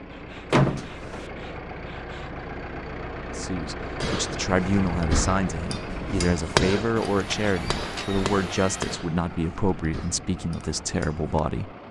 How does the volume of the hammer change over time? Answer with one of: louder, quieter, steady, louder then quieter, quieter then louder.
louder then quieter.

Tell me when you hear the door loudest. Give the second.
1 s.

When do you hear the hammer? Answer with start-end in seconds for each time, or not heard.
4.0-11.4.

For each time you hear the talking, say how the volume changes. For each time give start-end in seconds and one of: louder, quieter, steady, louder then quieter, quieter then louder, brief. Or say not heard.
3.2-11.8 steady.